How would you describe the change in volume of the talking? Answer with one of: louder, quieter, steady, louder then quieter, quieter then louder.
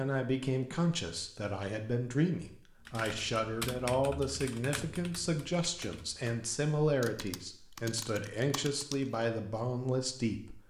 steady.